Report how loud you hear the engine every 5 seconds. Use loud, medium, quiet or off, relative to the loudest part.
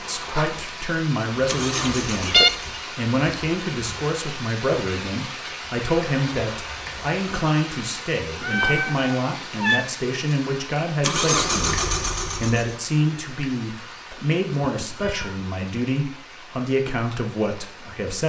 medium, off, loud, off.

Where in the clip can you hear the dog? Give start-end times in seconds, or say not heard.
not heard.